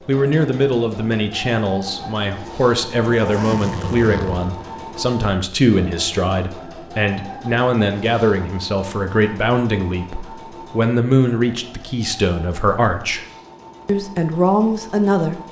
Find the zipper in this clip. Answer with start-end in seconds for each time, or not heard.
3.0-4.5.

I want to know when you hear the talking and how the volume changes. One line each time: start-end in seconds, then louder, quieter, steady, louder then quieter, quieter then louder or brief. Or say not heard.
0.1-13.2 steady
13.8-15.4 brief.